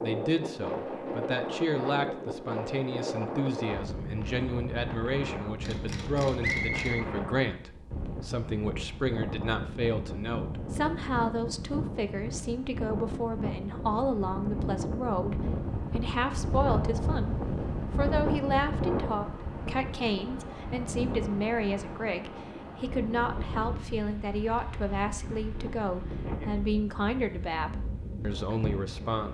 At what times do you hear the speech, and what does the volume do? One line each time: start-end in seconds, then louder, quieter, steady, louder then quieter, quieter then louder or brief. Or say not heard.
0.0-29.2 steady.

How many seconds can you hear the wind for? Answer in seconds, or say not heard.
29 s.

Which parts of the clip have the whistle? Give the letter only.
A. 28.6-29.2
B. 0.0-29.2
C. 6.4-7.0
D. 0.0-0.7
C.